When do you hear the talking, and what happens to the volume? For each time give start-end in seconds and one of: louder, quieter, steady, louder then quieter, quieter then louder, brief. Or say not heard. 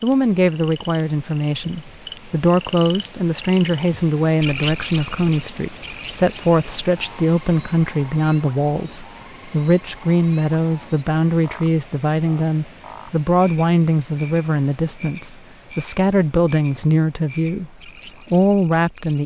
0.0-19.2 steady.